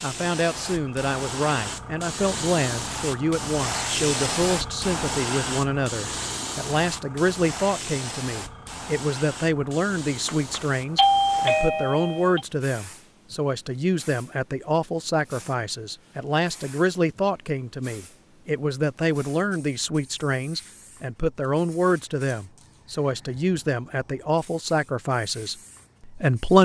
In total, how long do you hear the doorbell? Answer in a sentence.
The doorbell can be heard for 2 seconds in total.